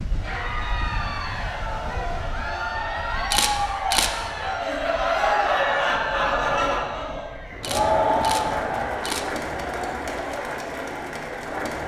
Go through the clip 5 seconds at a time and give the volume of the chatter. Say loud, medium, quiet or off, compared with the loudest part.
medium, loud, medium.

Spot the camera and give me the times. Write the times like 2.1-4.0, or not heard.
3.1-4.1, 7.5-9.3.